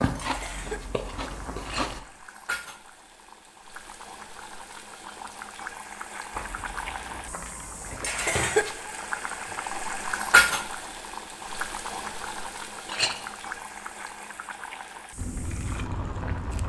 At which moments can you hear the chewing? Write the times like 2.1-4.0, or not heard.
0.0-2.0, 6.3-8.2, 15.2-16.6.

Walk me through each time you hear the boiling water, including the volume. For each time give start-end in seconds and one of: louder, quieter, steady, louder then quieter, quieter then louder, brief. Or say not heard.
0.1-16.6 louder then quieter.